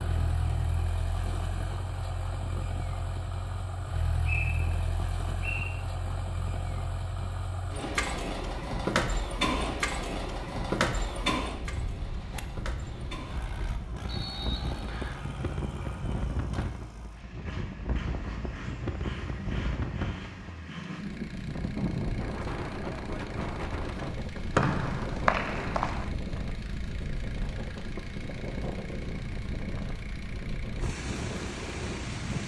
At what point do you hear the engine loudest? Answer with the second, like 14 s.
9 s.